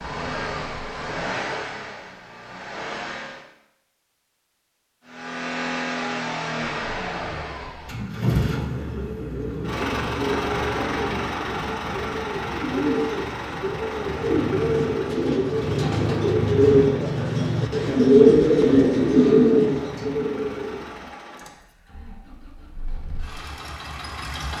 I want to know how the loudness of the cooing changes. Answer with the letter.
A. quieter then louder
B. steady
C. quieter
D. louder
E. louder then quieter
D.